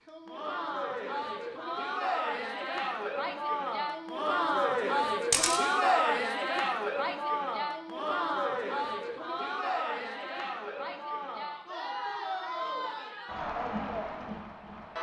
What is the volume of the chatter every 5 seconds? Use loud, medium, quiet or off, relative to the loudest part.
loud, loud, medium.